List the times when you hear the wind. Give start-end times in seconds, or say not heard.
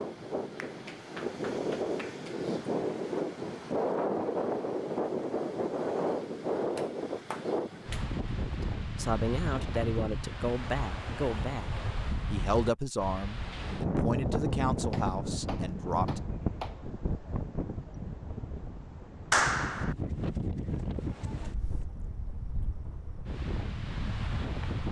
0.0-24.8.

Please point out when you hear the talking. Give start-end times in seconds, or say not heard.
8.5-16.2.